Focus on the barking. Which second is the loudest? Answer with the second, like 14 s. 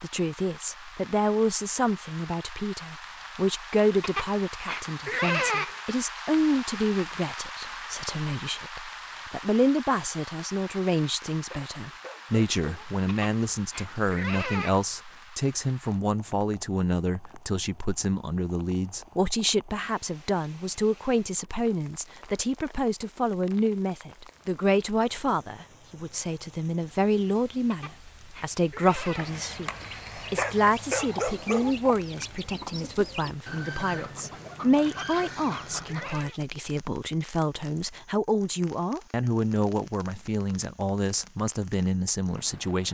31 s.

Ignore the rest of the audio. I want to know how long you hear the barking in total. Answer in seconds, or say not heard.
3 s.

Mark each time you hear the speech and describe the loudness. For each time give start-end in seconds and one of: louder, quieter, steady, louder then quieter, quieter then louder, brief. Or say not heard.
0.0-42.8 steady.